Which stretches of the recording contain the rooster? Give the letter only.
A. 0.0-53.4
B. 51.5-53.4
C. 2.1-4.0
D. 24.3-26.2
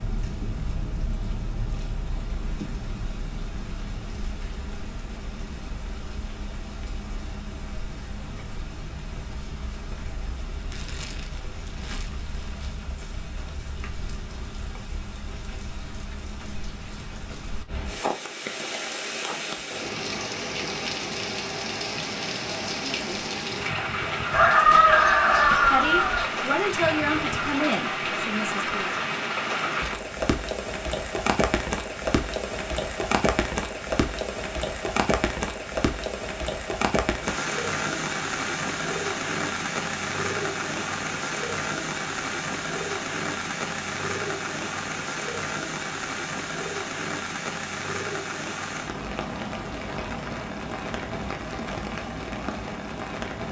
D.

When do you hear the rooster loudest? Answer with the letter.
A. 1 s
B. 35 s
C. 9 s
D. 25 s
D.